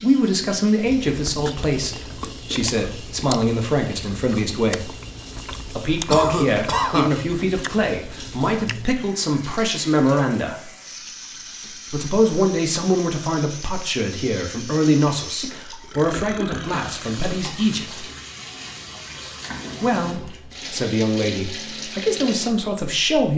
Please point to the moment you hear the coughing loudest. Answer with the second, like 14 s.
7 s.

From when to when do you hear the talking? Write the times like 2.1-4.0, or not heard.
0.0-5.0, 5.7-10.7, 11.9-18.1, 19.8-23.3.